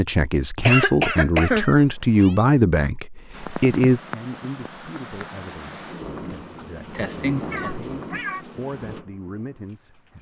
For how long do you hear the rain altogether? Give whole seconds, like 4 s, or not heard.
7 s.